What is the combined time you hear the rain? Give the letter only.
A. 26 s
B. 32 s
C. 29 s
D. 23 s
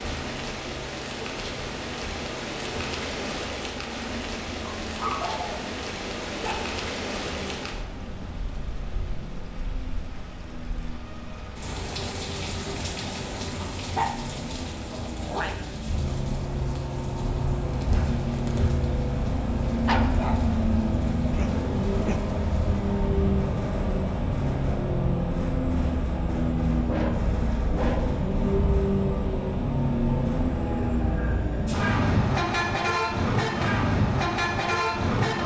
D.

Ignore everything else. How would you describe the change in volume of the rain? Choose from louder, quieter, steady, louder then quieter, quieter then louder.
quieter.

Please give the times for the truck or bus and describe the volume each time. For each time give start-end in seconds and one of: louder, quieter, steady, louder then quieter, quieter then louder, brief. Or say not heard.
0.0-35.4 louder.